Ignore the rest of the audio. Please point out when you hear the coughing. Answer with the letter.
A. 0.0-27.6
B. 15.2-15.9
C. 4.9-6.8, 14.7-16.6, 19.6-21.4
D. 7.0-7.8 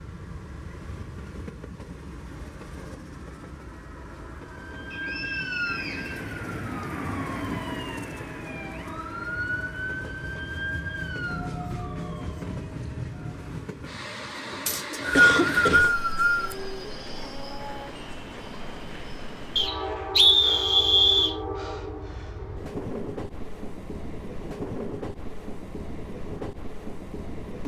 B.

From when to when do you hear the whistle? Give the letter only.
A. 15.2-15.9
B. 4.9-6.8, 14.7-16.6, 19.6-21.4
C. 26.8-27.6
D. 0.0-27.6
B.